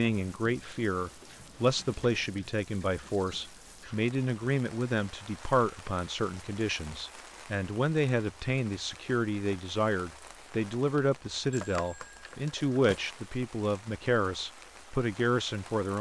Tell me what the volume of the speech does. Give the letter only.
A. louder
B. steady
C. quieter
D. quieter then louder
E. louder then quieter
B.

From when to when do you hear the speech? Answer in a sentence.
You can hear the speech from 0.0 to 15.9 s.